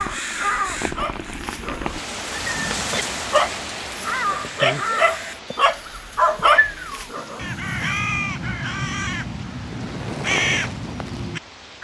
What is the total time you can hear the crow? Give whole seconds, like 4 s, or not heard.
9 s.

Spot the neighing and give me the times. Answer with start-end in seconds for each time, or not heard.
2.3-3.1.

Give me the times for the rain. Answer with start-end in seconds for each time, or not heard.
0.0-11.7.